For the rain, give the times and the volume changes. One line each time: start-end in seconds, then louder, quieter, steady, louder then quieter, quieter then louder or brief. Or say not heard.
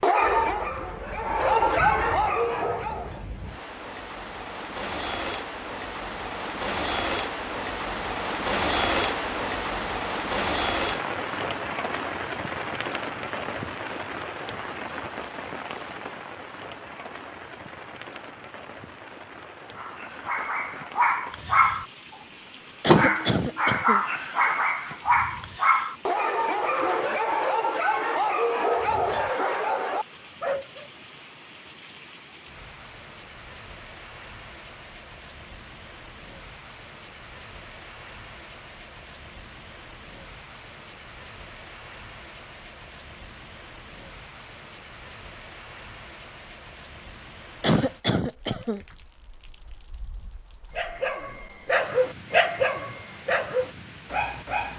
0.0-54.7 quieter.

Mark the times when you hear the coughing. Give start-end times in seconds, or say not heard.
22.8-24.0, 47.6-48.8.